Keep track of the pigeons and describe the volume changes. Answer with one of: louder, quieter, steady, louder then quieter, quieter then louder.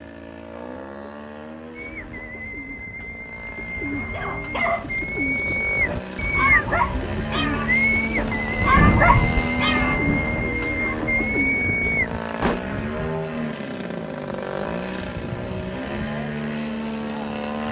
louder.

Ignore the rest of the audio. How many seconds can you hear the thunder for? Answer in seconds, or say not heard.
2 s.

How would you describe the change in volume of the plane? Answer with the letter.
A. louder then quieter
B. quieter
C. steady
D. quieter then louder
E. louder
E.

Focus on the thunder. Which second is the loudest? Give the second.
9 s.